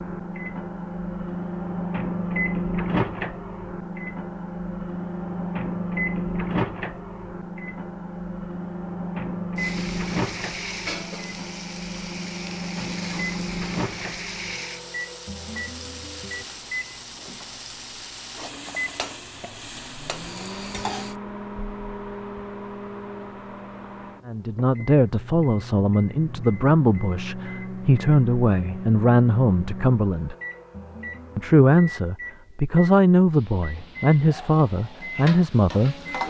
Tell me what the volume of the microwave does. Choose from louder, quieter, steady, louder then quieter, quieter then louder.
quieter.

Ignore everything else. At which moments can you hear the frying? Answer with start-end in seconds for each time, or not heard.
9.6-21.1, 33.3-36.2.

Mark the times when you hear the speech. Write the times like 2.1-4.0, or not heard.
24.2-30.4, 31.4-36.2.